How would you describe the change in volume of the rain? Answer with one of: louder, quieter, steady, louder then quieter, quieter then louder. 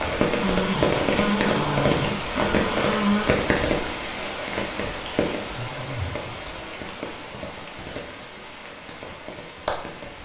quieter.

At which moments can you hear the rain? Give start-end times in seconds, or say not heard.
0.0-10.2.